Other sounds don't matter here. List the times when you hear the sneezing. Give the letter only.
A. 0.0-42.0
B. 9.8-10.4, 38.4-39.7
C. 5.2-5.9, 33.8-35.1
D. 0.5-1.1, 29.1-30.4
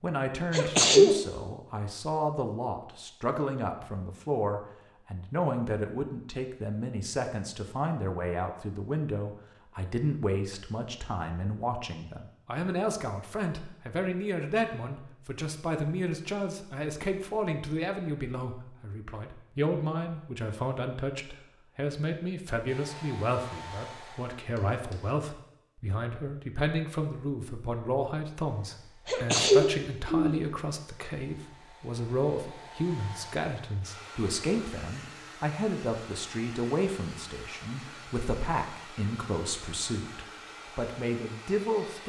D.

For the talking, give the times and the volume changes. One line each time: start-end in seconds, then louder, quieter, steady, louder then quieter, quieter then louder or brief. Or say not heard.
0.0-42.0 steady.